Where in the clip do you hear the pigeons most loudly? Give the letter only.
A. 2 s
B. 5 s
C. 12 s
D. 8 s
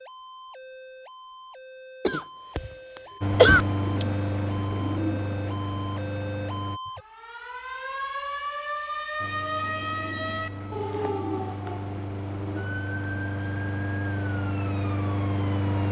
B.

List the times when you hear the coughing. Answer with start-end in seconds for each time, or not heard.
2.0-2.7, 3.4-4.0.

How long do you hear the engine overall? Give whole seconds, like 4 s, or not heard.
10 s.